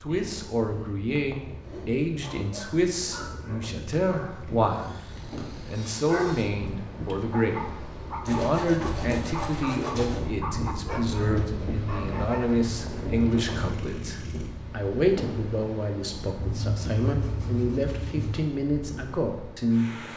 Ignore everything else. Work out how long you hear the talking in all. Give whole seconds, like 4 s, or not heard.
19 s.